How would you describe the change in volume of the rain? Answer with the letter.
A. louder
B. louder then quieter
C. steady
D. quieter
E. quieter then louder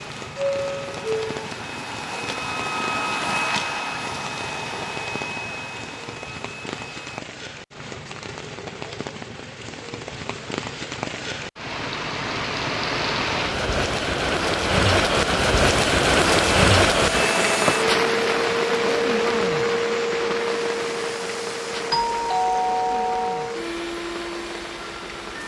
B.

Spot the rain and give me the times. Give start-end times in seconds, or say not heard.
0.0-25.4.